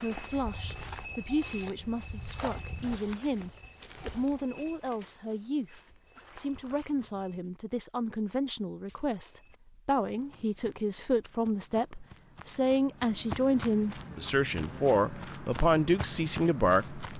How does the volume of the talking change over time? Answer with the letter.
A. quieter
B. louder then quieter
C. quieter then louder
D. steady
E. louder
E.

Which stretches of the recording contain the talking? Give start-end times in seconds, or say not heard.
0.0-17.0.